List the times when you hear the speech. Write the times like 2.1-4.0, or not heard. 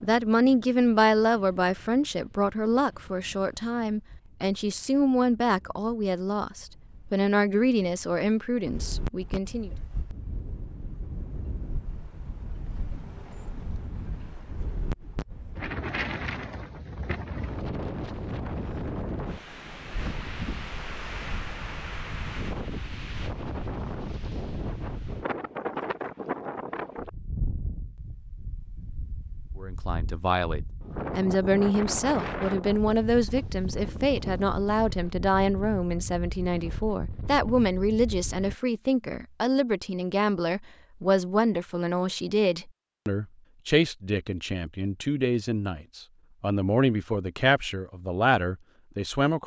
0.0-9.7, 29.6-49.4.